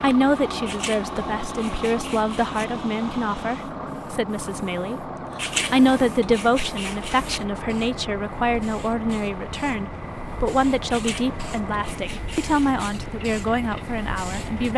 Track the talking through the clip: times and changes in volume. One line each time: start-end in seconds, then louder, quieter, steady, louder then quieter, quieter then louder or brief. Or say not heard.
0.0-14.7 steady.